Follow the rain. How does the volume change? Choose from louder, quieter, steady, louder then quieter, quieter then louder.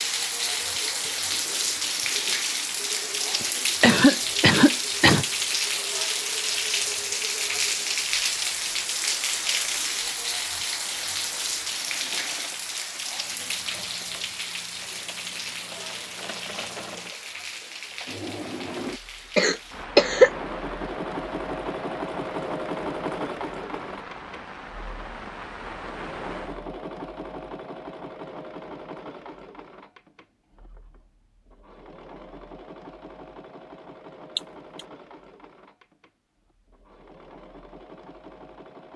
quieter.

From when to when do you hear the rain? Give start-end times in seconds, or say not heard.
0.0-26.6.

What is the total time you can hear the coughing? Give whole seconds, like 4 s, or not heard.
3 s.